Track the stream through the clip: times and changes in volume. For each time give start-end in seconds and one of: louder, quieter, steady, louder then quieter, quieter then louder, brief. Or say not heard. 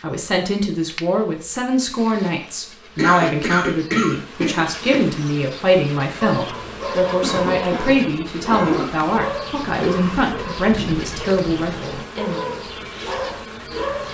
not heard.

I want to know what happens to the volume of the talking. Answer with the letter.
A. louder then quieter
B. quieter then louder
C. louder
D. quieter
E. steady
E.